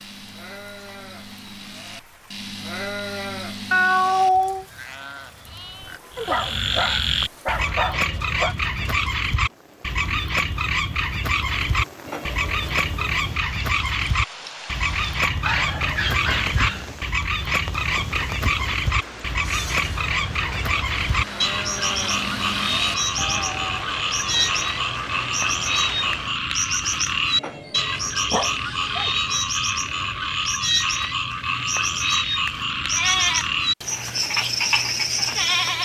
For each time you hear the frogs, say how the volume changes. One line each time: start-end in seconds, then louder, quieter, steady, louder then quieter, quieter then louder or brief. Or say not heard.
6.1-35.8 steady.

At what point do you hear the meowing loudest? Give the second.
4 s.